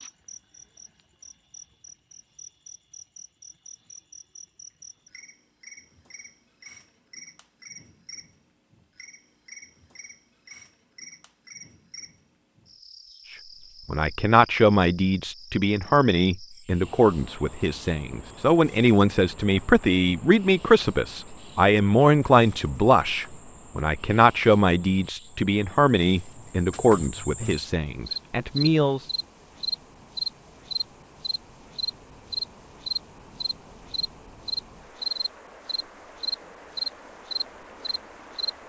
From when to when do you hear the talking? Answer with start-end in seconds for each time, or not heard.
13.8-29.1.